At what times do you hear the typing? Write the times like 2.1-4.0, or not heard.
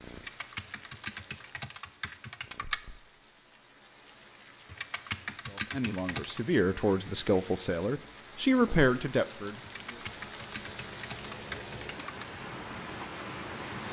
0.1-2.8, 4.7-6.4, 9.6-12.2.